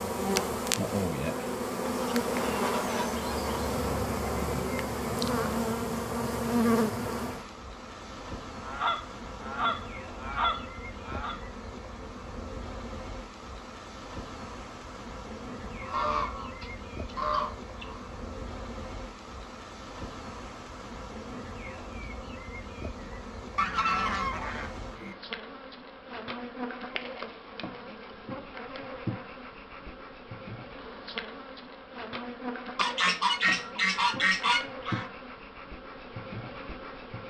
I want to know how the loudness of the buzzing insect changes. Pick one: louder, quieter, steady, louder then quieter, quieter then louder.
quieter.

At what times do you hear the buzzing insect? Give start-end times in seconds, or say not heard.
0.0-37.2.